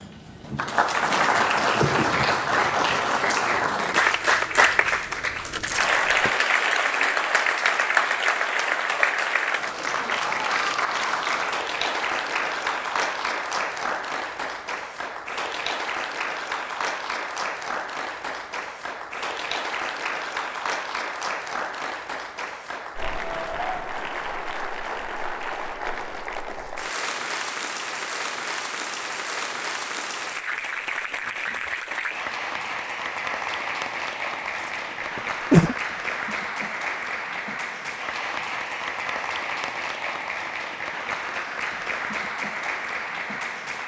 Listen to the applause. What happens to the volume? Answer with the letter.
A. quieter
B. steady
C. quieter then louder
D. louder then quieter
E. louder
A.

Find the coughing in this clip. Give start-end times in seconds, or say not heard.
5.5-6.3, 34.5-35.8.